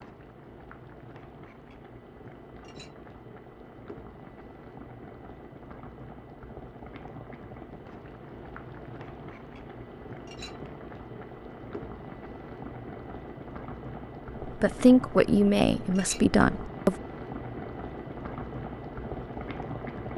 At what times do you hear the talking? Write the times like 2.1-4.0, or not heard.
14.4-16.9.